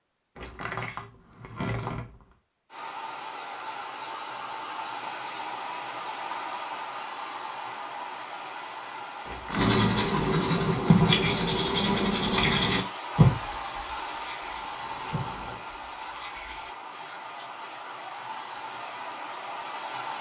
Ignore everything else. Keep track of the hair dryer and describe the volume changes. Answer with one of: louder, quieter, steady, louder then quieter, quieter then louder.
steady.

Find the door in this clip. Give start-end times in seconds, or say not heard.
0.3-2.2, 9.2-9.9, 14.8-15.6.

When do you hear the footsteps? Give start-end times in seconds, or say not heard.
not heard.